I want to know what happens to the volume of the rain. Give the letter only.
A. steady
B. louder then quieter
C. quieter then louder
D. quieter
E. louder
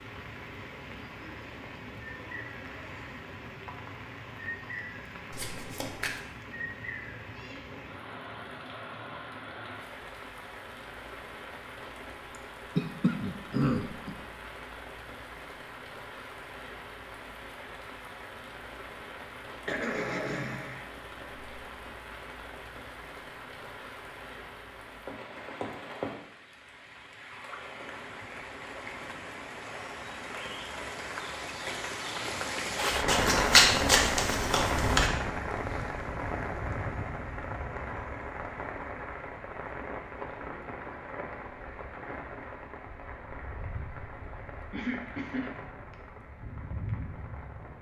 B.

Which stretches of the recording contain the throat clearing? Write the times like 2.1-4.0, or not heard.
12.8-14.2, 19.6-20.9, 44.7-46.0.